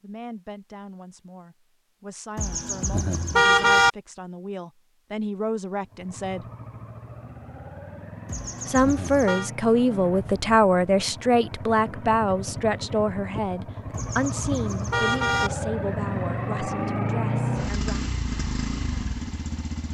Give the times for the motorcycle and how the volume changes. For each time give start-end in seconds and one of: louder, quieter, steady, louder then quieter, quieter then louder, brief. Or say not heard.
5.8-19.8 louder.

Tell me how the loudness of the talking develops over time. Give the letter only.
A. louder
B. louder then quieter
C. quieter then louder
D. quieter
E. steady
B.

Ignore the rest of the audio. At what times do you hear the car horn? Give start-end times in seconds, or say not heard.
2.4-3.9, 8.2-9.5, 13.9-15.5.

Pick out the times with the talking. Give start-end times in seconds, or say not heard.
0.0-6.5, 8.7-18.1.